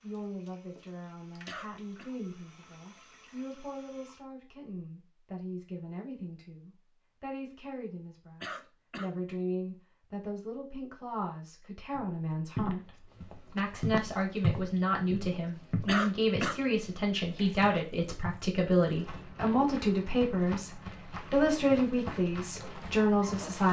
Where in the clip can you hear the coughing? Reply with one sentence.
The coughing can be heard from 1.4 to 2.1 s, from 8.4 to 9.2 s and from 15.8 to 16.6 s.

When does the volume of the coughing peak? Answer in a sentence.
The loudest moment of the coughing is at 16 seconds.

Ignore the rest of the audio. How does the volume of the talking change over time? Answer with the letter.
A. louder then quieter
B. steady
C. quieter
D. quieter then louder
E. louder
E.